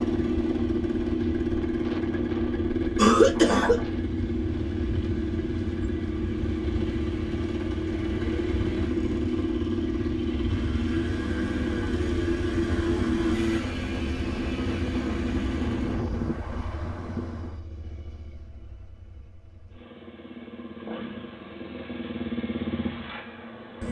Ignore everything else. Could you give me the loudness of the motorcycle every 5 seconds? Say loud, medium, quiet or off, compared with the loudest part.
loud, loud, loud, medium, medium.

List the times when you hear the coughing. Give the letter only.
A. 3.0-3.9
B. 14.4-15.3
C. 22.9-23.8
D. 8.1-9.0
A.